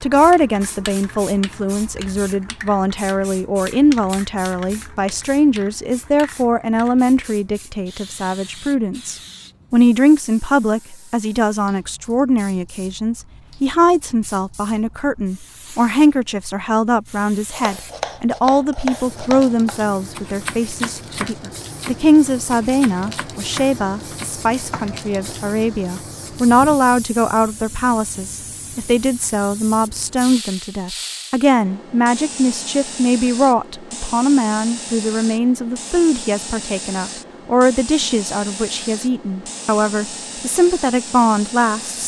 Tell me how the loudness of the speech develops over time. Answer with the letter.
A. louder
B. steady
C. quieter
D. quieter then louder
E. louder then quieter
B.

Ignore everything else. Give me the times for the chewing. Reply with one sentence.
You can't hear the chewing here.